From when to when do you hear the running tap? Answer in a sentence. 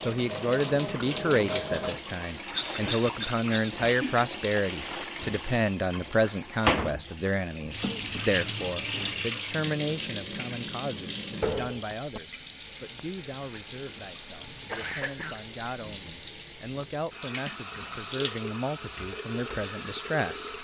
The running tap can be heard from 0.0 to 20.5 s.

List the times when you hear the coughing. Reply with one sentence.
You can hear the coughing from 2.5 to 3.8 s, from 7.6 to 9.3 s and from 14.7 to 15.3 s.